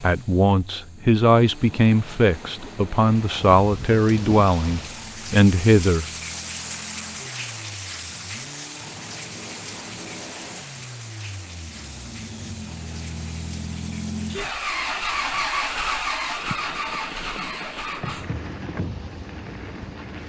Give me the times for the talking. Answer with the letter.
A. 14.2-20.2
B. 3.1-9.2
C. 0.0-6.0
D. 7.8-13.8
C.